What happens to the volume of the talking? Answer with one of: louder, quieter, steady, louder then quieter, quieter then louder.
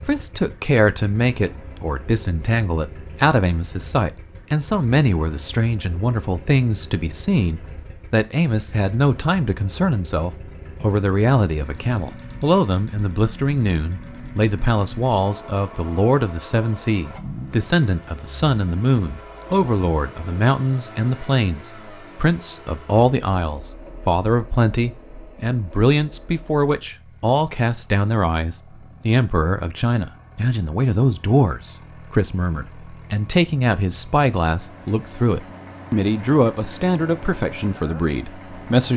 steady.